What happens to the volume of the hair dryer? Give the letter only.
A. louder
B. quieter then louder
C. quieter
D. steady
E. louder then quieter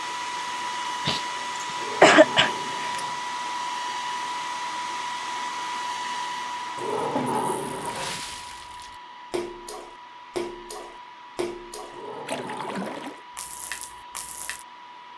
C.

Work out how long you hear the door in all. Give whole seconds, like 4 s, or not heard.
4 s.